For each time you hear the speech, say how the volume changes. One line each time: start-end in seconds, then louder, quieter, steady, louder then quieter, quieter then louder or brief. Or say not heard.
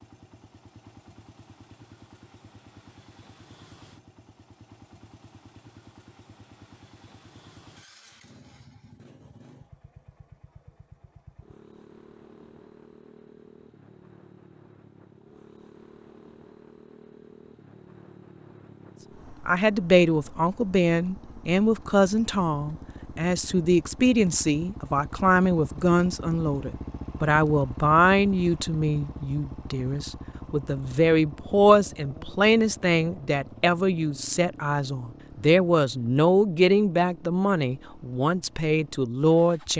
19.4-39.7 steady.